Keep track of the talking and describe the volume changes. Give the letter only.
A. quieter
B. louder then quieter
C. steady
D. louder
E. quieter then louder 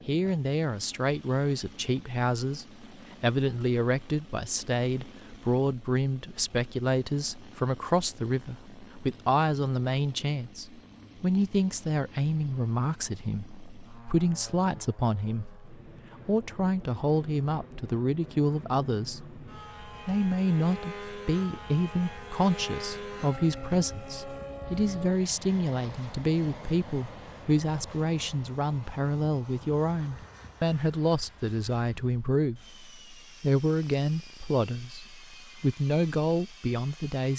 C.